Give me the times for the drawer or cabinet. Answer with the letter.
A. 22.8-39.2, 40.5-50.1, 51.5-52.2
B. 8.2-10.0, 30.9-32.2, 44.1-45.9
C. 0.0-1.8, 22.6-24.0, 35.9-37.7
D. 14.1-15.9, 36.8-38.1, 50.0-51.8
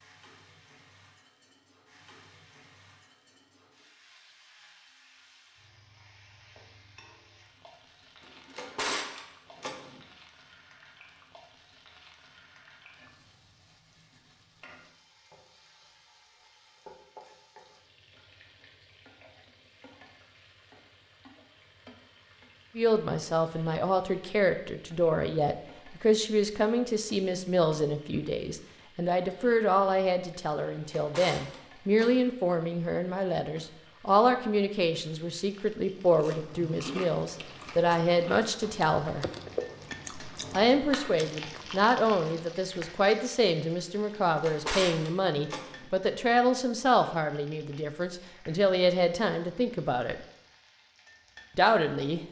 B.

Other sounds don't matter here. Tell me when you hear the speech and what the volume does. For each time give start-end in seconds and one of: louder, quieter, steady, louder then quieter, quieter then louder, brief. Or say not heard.
22.8-39.2 steady
40.5-50.1 steady
51.5-52.2 brief.